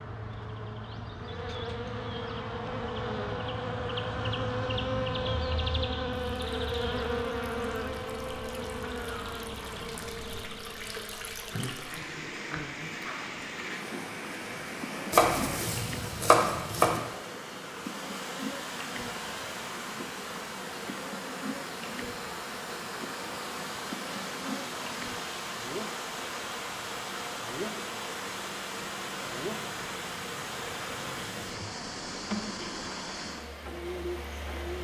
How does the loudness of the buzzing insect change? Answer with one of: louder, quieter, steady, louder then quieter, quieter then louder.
quieter.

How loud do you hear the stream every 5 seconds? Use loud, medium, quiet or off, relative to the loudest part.
off, medium, loud, loud, loud, loud, loud.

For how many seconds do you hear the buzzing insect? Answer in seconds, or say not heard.
35 s.